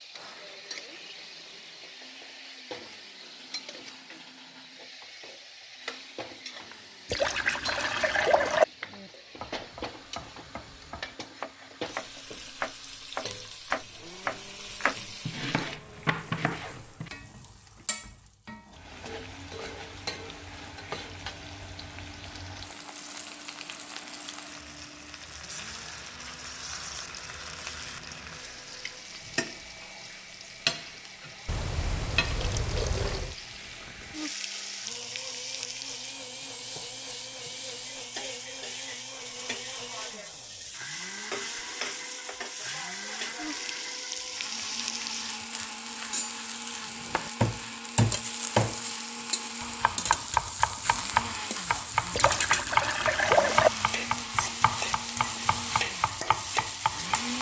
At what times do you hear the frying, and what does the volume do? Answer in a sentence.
You can hear the frying from 0.0 to 57.3 s, getting louder.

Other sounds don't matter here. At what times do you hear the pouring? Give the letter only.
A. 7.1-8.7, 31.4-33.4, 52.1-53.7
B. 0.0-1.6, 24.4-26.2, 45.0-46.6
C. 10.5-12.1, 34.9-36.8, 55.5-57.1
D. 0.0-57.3
A.